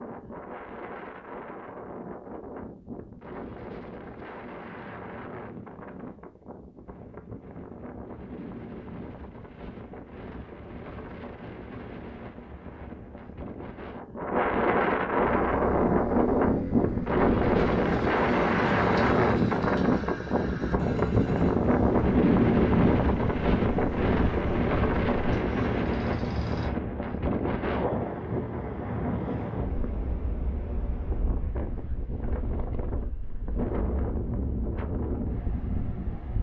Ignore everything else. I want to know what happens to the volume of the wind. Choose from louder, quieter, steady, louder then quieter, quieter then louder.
louder then quieter.